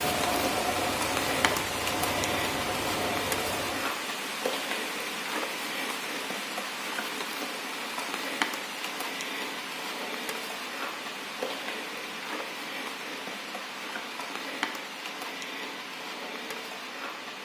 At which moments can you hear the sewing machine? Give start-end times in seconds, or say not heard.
0.0-3.9.